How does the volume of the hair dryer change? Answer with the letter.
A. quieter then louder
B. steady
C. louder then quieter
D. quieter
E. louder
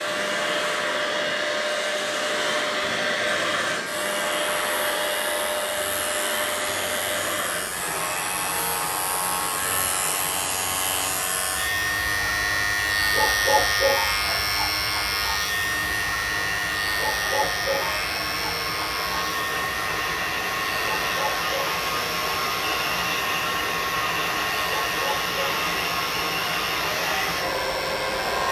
A.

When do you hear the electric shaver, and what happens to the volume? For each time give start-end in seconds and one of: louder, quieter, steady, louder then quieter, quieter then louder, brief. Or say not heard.
0.0-28.4 louder then quieter.